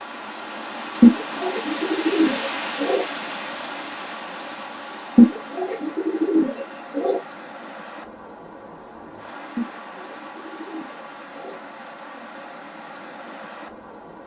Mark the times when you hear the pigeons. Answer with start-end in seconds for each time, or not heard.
1.0-3.0, 5.2-7.2, 9.6-11.6.